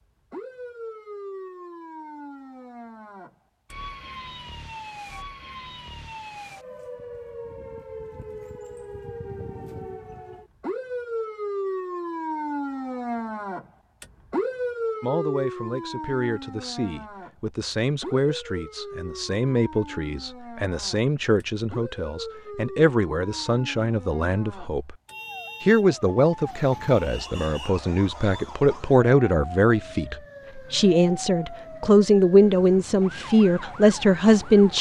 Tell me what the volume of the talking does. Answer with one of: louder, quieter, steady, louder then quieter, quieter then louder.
louder.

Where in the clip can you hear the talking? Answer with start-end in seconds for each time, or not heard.
15.0-24.9, 25.6-34.7.